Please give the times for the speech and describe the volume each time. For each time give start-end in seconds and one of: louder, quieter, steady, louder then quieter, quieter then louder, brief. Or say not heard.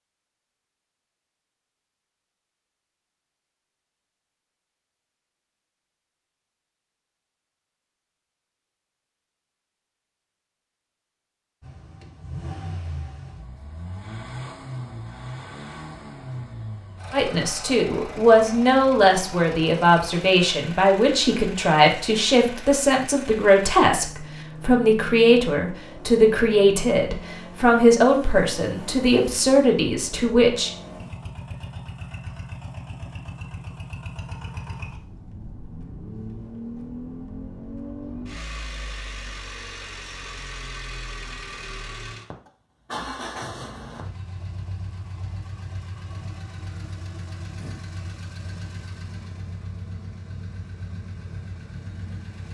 17.1-30.7 steady.